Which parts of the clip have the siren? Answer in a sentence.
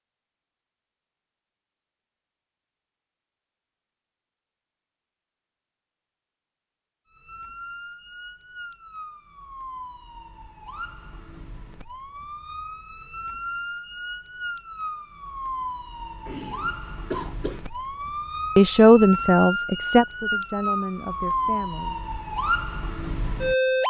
The siren can be heard from 7.1 to 23.8 s.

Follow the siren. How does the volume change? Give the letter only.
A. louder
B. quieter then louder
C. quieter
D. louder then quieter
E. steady
A.